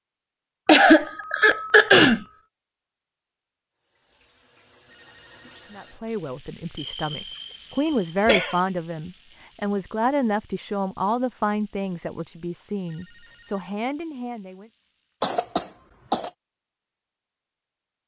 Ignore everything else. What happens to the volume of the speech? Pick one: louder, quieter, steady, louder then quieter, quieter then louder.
louder then quieter.